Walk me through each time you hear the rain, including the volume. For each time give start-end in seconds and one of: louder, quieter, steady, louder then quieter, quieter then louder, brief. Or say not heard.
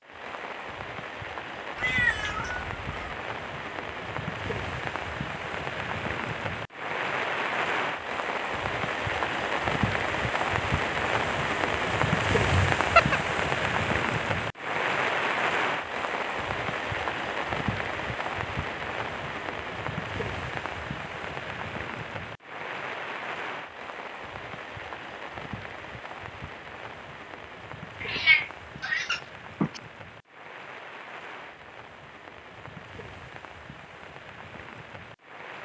0.0-35.5 louder then quieter.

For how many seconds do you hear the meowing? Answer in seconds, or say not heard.
4 s.